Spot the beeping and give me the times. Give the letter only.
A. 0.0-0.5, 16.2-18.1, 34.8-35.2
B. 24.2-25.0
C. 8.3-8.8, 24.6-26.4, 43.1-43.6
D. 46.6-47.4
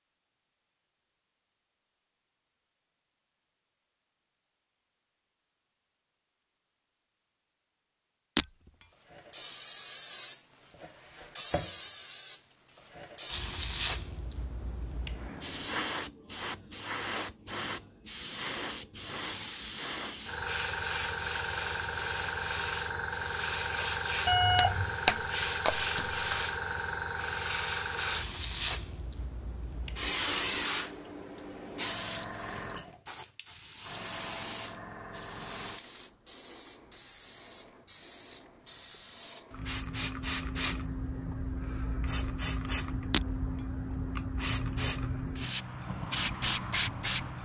B.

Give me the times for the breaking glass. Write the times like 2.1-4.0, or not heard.
8.3-8.8, 24.6-26.4, 43.1-43.6.